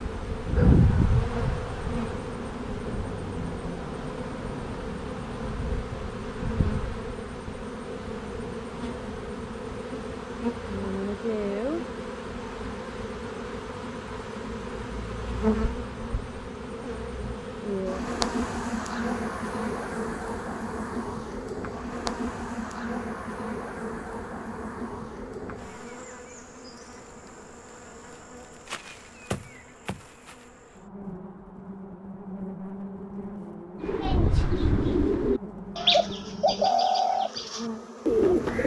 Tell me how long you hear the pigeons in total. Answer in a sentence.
You can hear the pigeons for 5 seconds altogether.